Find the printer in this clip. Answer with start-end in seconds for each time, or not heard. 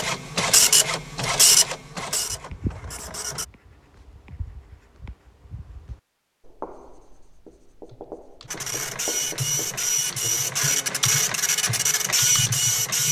0.0-3.5, 8.5-13.0.